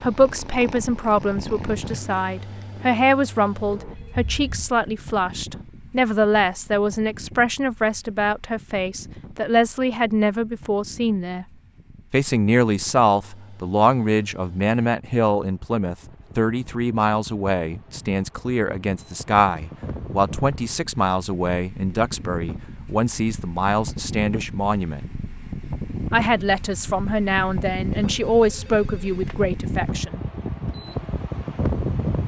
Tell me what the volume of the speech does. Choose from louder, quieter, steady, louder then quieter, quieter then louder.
steady.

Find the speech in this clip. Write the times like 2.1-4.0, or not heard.
0.0-11.4, 12.1-25.1, 26.1-30.2.